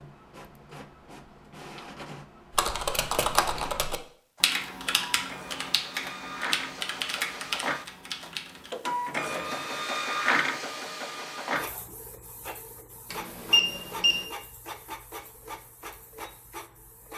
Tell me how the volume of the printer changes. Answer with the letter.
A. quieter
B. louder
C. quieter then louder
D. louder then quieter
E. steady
D.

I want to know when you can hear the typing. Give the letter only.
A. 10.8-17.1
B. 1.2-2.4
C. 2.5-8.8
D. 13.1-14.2
C.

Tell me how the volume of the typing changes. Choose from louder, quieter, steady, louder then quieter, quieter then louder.
quieter.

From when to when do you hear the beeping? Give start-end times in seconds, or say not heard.
13.1-14.2.